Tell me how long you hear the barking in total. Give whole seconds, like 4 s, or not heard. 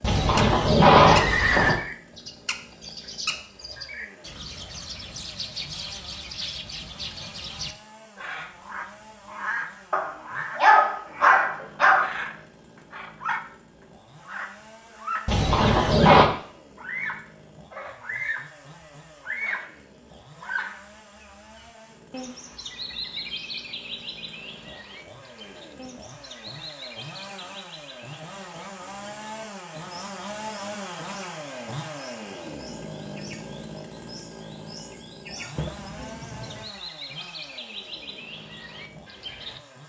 2 s.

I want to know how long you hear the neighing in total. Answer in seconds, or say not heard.
4 s.